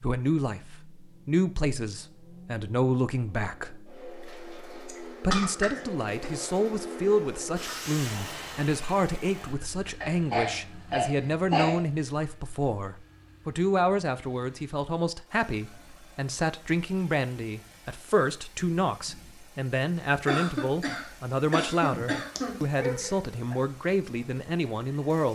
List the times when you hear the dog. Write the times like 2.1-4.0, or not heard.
22.4-23.6.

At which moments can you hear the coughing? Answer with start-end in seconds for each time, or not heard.
4.8-6.3, 10.0-11.8, 20.2-22.6.